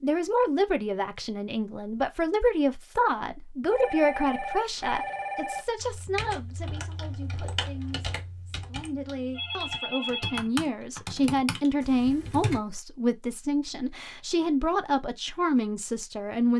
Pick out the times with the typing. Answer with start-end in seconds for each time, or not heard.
5.8-12.6.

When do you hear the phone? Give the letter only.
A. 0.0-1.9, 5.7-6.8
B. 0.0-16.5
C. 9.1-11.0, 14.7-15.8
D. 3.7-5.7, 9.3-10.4
D.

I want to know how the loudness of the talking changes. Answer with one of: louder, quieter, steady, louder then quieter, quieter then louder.
quieter then louder.